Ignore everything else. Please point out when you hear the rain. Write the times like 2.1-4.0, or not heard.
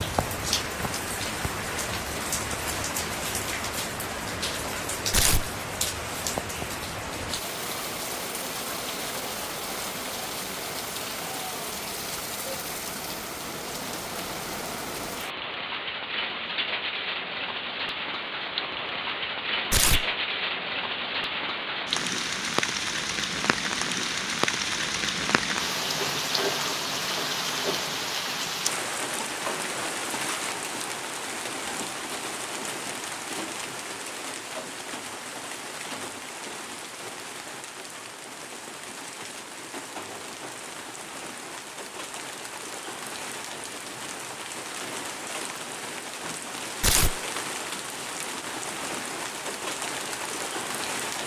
0.0-51.2.